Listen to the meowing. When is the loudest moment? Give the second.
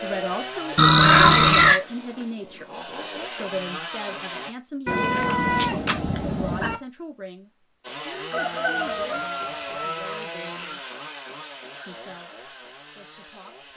1 s.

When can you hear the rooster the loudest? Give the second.
9 s.